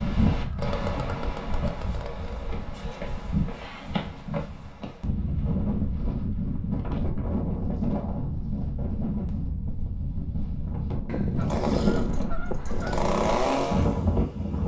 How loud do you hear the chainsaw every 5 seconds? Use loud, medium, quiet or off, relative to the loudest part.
medium, off, loud.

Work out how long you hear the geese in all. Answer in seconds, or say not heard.
3 s.